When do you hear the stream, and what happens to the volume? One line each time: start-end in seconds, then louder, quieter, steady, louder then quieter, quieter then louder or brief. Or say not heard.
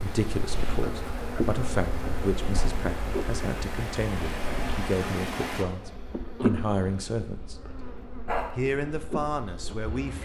0.0-5.7 louder.